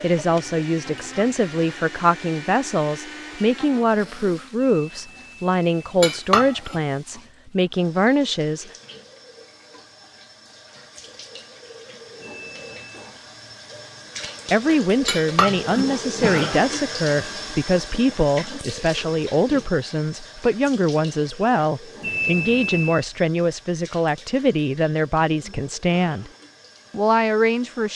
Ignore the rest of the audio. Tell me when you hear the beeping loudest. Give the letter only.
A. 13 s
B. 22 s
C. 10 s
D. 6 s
B.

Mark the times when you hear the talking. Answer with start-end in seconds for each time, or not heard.
0.0-8.7, 14.5-26.3, 26.9-27.9.